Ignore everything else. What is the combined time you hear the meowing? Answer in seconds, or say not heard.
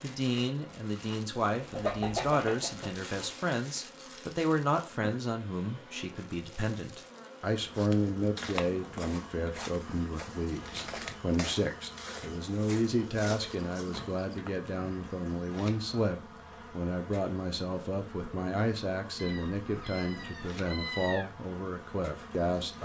2 s.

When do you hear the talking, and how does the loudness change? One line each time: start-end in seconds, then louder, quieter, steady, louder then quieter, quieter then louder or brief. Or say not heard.
0.0-22.7 steady.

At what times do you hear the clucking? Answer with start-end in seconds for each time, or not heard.
1.6-3.0.